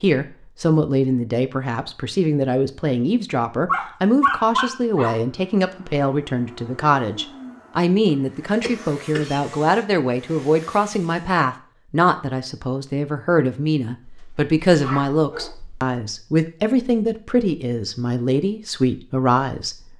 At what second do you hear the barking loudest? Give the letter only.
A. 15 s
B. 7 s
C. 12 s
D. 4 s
D.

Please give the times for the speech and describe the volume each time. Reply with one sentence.
The speech can be heard from 0.0 to 19.9 s, at a steady volume.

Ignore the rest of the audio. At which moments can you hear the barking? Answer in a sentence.
You can hear the barking from 3.6 to 5.1 s and from 14.0 to 15.8 s.